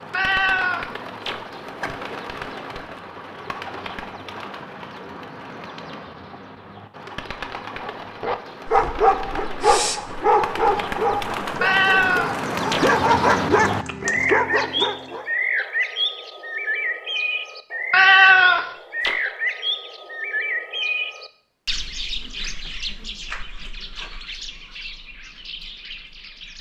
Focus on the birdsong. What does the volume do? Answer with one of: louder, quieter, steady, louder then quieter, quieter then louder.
louder then quieter.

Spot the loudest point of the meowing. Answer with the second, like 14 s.
18 s.